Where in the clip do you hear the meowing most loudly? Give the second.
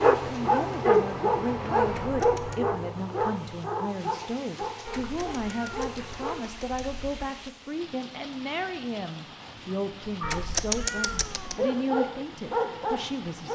11 s.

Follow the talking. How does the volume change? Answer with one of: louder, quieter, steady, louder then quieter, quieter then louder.
steady.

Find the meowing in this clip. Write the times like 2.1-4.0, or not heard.
1.9-2.6, 4.8-7.2, 10.2-11.6.